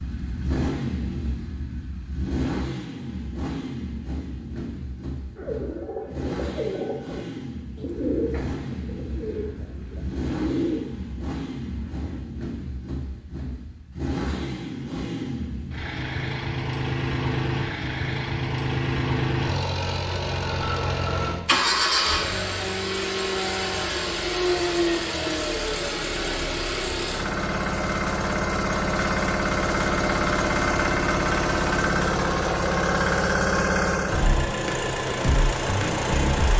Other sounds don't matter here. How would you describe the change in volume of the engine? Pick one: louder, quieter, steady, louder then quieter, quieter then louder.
louder.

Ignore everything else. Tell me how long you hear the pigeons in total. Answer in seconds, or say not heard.
7 s.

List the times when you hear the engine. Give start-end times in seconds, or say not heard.
0.0-36.5.